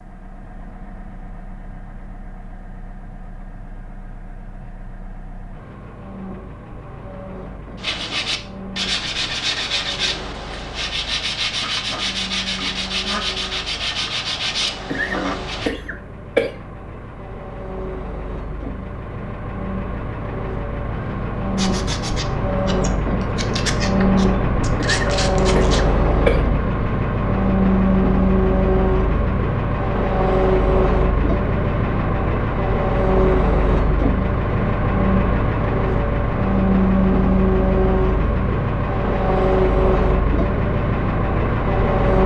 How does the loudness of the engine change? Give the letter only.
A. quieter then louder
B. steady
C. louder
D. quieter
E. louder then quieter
C.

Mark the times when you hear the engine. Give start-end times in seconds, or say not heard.
0.0-42.2.